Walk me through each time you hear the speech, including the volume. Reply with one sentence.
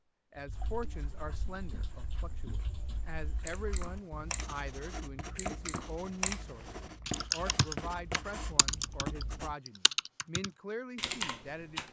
The speech can be heard from 0.3 to 11.8 s, at a steady volume.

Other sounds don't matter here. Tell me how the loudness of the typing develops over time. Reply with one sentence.
The loudness of the typing goes up.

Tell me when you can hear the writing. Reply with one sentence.
You can hear the writing from 0.5 to 9.6 s.